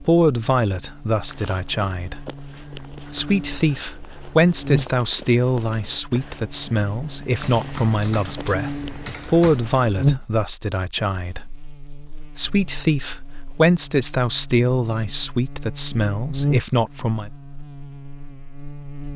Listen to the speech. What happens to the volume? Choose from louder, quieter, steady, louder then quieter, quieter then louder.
steady.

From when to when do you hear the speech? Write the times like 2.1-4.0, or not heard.
0.0-11.7, 12.3-17.3.